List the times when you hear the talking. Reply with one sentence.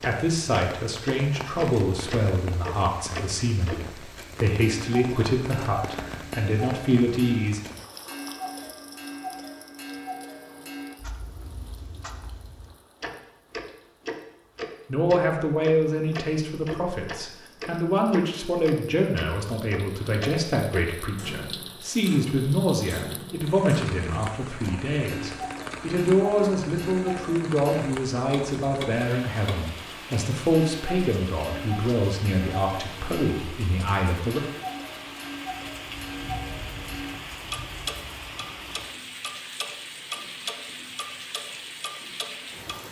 The talking can be heard from 0.0 to 7.6 s and from 14.8 to 34.4 s.